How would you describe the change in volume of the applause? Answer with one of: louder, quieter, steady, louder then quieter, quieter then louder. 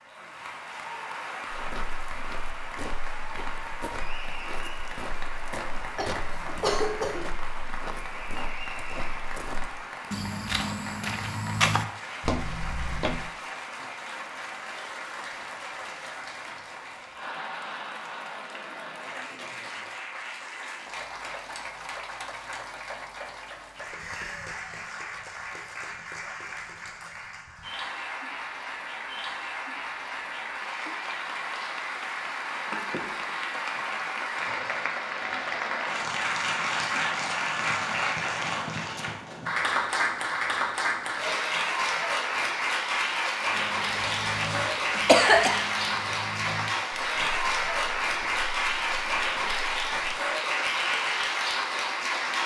louder.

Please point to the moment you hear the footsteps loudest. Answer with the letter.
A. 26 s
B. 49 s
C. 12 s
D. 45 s
C.